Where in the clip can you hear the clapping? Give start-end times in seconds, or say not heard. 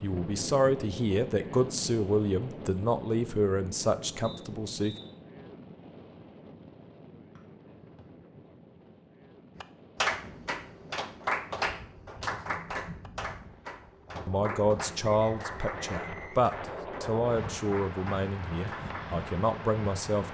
9.6-19.2.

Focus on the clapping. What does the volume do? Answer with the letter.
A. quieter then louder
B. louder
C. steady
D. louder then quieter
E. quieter
E.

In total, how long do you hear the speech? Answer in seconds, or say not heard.
11 s.